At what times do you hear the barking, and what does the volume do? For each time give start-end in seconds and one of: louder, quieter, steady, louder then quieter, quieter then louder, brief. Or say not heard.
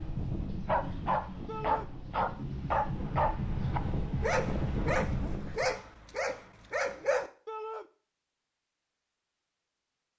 0.7-7.3 quieter.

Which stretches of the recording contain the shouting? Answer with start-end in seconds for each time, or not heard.
1.4-1.9, 7.5-7.9.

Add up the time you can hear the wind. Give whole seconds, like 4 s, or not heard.
6 s.